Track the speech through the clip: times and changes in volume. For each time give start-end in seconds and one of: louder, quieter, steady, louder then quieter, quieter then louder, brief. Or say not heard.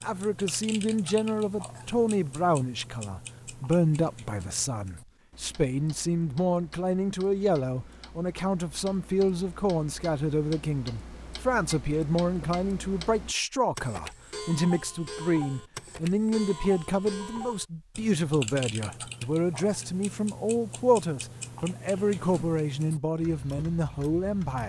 0.0-24.6 steady.